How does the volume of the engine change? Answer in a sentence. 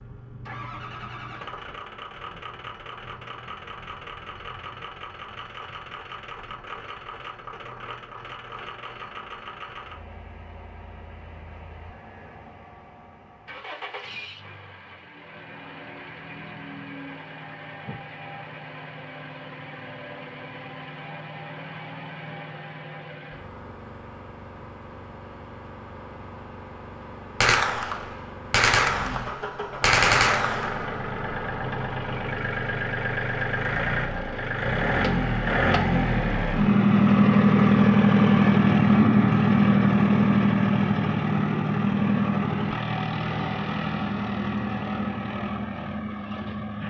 The volume of the engine goes up.